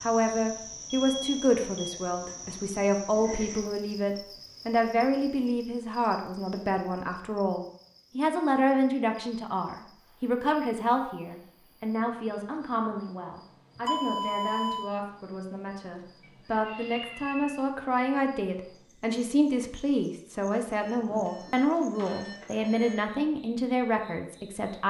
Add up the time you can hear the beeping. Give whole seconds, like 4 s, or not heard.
4 s.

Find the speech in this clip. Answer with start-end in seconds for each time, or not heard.
0.0-24.8.